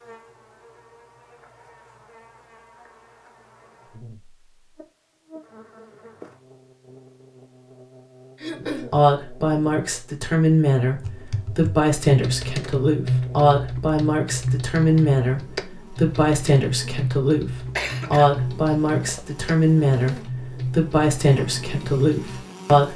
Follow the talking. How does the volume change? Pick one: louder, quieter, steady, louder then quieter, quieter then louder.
steady.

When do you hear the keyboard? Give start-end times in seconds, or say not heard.
10.9-22.4.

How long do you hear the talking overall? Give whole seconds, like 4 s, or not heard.
14 s.